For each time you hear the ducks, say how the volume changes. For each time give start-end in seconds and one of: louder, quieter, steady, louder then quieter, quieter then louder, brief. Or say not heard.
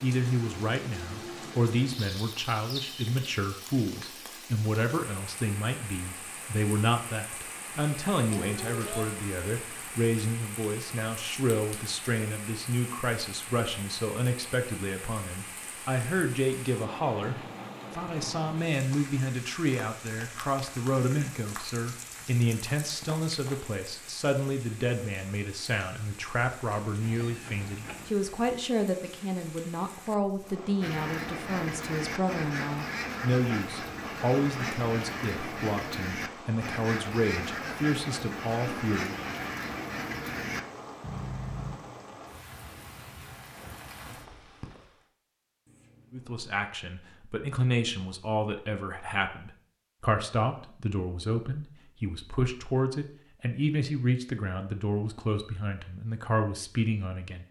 30.8-41.8 steady.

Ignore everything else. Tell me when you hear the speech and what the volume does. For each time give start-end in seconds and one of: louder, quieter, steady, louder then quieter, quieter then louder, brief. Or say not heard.
0.0-39.1 steady
46.1-57.4 steady.